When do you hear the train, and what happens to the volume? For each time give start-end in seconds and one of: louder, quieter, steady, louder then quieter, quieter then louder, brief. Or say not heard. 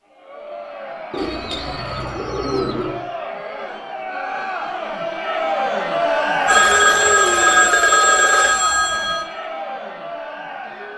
not heard.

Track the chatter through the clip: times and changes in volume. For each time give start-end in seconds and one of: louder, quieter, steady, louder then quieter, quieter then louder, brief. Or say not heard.
0.0-10.9 louder then quieter.